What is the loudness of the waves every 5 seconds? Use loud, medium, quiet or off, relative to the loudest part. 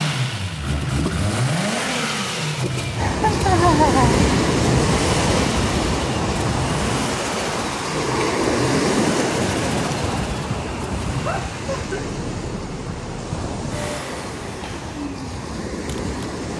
loud, loud, medium, medium.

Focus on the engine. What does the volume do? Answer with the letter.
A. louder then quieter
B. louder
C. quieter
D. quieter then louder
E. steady
C.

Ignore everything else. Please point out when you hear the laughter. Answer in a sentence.
The laughter can be heard from 3.0 to 4.2 s and from 11.2 to 11.9 s.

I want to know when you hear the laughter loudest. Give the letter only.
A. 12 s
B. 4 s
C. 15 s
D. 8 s
B.